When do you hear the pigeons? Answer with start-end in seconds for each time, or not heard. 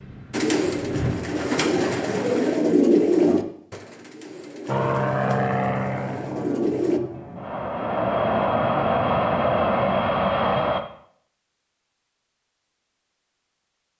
0.3-7.0.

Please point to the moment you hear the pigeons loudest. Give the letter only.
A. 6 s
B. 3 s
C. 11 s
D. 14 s
B.